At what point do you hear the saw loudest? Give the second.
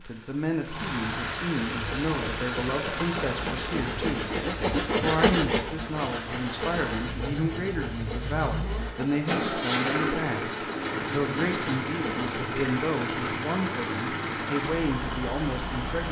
5 s.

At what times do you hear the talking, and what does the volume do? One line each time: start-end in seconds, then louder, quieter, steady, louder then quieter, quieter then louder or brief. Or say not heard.
0.0-16.0 steady.